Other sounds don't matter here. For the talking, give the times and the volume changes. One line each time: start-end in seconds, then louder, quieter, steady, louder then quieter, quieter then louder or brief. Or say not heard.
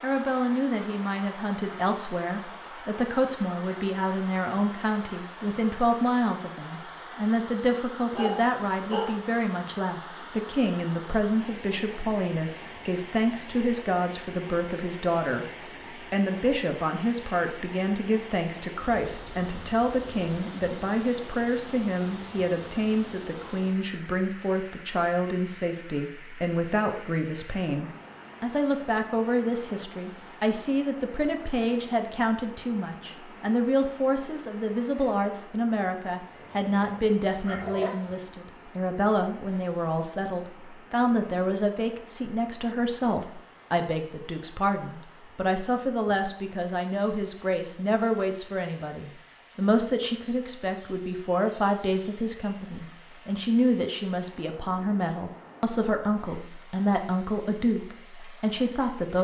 0.0-15.5 steady
16.1-59.1 steady.